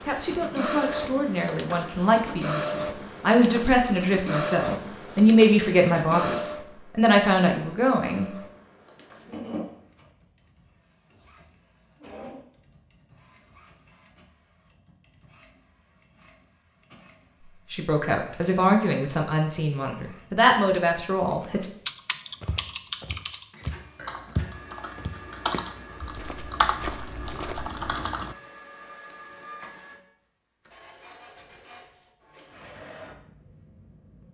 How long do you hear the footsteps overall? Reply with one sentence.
The footsteps can be heard for 6 seconds in total.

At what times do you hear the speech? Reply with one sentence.
You can hear the speech from 0.0 to 8.3 s and from 17.7 to 21.7 s.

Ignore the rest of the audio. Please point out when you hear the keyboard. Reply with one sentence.
You can hear the keyboard from 21.9 to 28.4 s.